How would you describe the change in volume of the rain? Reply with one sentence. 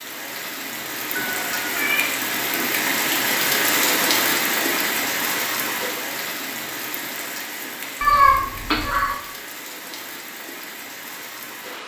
The loudness of the rain goes up, then down.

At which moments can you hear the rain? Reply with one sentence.
The rain can be heard from 0.0 to 11.8 s.